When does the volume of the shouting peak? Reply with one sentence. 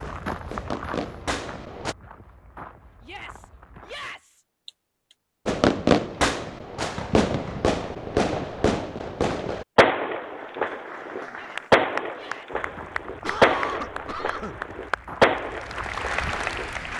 The loudest moment of the shouting is at 4 seconds.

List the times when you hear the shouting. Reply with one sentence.
You can hear the shouting from 3.0 to 4.5 s and from 11.3 to 12.7 s.